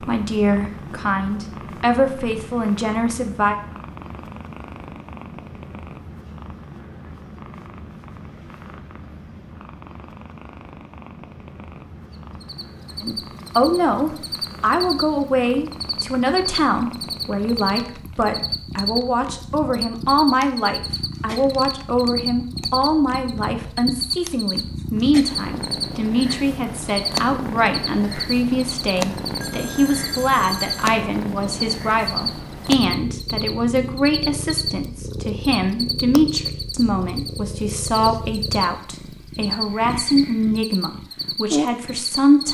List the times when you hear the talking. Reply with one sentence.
You can hear the talking from 0.0 to 3.5 s and from 13.0 to 42.4 s.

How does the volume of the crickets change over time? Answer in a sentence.
The volume of the crickets stays about the same.